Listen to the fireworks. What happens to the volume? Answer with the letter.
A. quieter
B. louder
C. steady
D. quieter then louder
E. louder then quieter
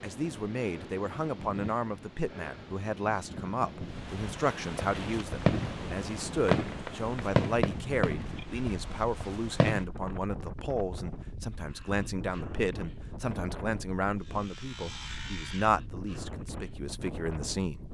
A.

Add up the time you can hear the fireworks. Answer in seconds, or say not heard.
5 s.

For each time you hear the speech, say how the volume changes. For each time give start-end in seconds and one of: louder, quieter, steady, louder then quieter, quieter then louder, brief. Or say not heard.
0.0-17.8 steady.